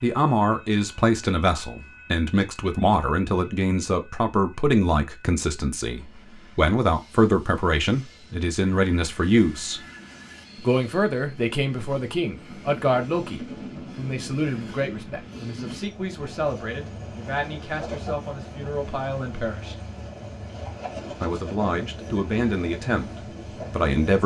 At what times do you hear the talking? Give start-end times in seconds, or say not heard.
0.0-9.8, 10.6-19.8, 21.2-23.1, 23.7-24.2.